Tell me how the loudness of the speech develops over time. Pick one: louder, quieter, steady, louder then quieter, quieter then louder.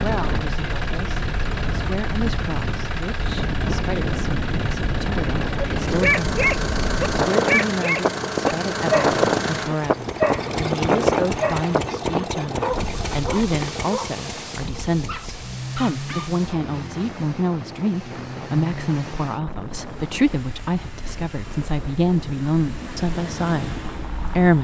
louder.